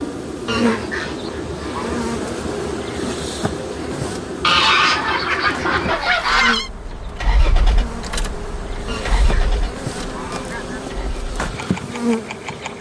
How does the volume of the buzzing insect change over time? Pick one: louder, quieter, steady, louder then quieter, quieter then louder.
quieter then louder.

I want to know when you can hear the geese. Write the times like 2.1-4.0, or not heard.
0.5-2.0, 4.4-6.7, 8.8-10.8.